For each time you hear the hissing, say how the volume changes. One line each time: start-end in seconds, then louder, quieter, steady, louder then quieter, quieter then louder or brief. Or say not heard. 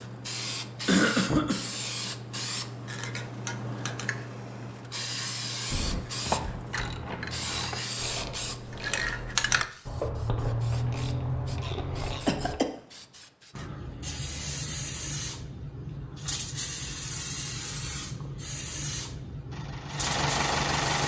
0.0-21.0 steady.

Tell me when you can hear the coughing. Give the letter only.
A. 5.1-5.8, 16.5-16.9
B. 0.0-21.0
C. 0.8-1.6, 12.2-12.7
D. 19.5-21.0
C.